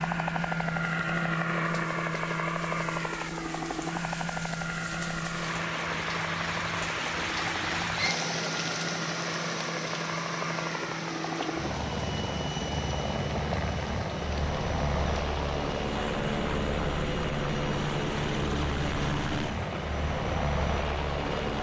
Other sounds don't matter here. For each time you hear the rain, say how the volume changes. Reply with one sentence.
You can hear the rain from 0.0 to 21.5 s, getting louder then quieter.